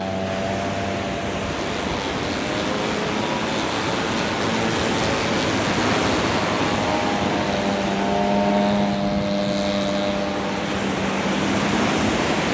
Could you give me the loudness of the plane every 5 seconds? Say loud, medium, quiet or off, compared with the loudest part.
medium, loud, loud.